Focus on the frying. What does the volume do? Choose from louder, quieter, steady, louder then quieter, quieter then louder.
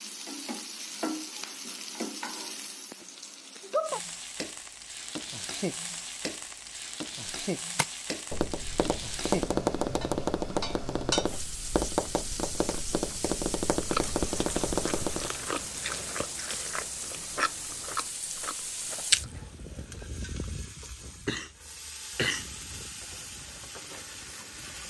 quieter.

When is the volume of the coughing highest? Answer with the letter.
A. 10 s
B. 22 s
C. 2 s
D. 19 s
B.